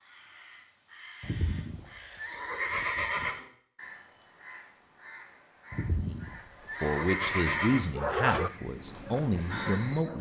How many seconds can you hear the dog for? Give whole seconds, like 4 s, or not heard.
2 s.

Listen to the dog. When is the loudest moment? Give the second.
8 s.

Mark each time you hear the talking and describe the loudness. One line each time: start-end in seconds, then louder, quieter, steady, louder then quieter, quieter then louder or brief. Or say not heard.
6.0-10.1 quieter then louder.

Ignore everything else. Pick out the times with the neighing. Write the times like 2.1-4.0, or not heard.
1.2-3.4, 5.7-7.9.